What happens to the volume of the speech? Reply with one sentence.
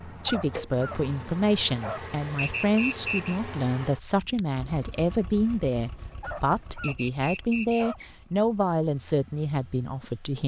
The loudness of the speech stays about the same.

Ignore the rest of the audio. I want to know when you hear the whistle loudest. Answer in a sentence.
The volume of the whistle peaks at 3 seconds.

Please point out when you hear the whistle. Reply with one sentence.
You can hear the whistle from 2.4 to 3.4 s and from 6.8 to 8.1 s.